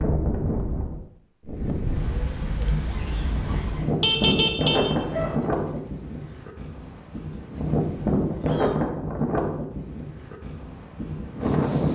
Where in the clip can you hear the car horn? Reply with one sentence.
You can hear the car horn from 4.0 to 5.3 s.